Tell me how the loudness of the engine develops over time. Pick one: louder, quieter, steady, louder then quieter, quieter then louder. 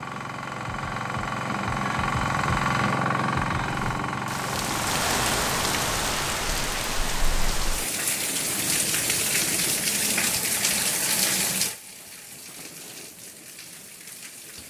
louder then quieter.